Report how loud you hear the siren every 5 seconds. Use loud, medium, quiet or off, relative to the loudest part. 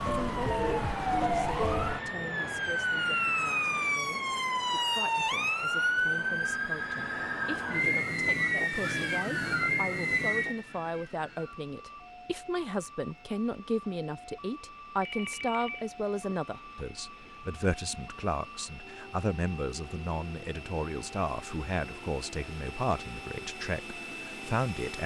loud, loud, medium, quiet, quiet.